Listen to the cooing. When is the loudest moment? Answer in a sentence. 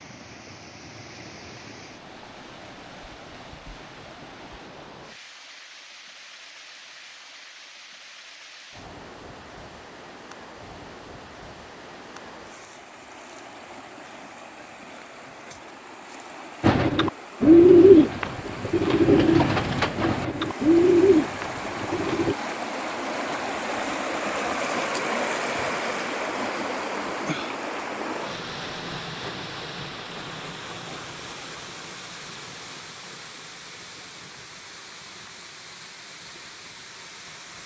The loudest moment of the cooing is at 18 seconds.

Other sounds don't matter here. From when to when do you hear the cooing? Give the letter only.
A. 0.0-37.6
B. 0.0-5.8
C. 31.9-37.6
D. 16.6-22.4
D.